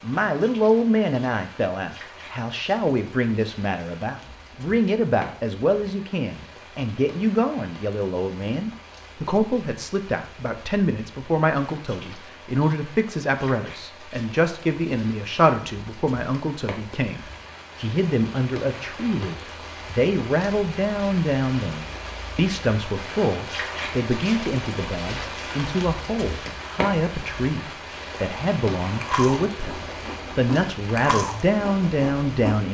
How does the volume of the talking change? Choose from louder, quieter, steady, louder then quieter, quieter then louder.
steady.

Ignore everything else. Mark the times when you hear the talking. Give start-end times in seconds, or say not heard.
0.0-32.6.